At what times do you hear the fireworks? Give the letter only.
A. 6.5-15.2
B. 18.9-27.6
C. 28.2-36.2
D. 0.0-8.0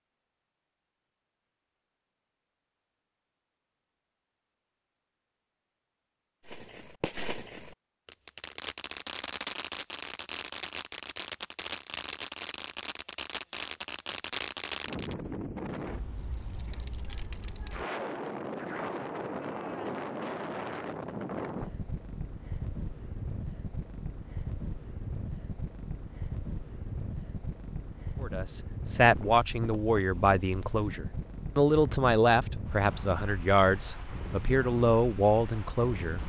A.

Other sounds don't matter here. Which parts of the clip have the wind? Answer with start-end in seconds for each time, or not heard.
14.8-36.2.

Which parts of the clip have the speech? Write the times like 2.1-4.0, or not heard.
28.2-36.2.